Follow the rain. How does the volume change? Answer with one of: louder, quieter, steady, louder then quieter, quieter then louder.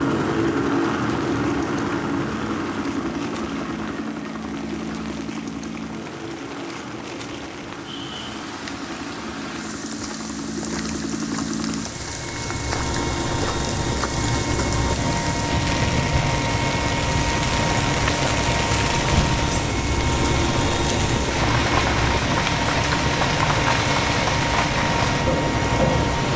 louder.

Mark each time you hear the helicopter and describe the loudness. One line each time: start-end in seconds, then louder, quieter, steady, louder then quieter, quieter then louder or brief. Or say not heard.
0.0-26.3 quieter then louder.